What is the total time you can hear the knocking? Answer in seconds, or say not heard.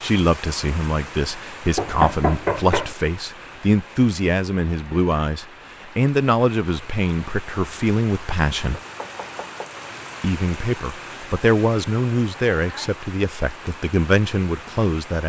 2 s.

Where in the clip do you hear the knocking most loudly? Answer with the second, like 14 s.
2 s.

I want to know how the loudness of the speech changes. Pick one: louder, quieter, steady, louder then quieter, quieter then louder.
steady.